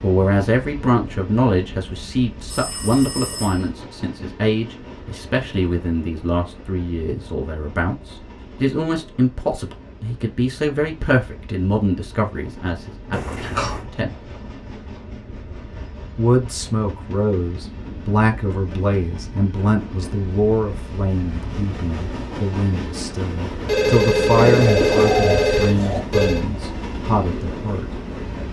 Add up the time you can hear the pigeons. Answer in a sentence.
The pigeons can be heard for 2 seconds in total.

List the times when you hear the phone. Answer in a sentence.
The phone can be heard from 2.5 to 3.7 s, from 13.1 to 13.8 s and from 23.6 to 26.4 s.